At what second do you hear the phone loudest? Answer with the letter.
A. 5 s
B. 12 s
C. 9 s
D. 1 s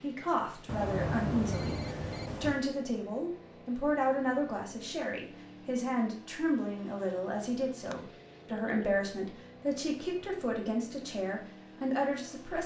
D.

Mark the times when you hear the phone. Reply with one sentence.
The phone can be heard from 0.7 to 2.6 s and from 7.8 to 8.9 s.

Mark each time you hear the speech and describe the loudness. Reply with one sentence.
The speech can be heard from 0.0 to 12.6 s, at a steady volume.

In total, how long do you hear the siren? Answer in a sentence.
You can't hear the siren here.